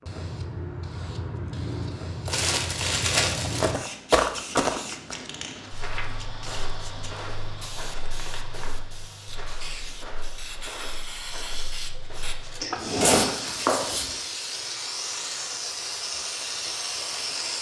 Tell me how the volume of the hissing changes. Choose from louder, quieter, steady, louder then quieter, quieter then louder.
quieter then louder.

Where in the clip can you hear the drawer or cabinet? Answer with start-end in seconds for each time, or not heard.
12.6-13.3.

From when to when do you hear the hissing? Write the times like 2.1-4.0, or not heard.
0.0-17.5.